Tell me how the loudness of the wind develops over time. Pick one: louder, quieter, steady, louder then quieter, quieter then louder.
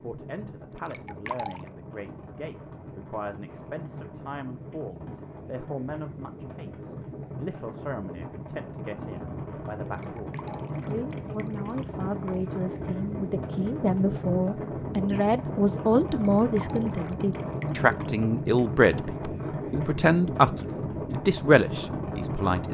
louder.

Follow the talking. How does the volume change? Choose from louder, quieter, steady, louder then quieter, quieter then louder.
louder.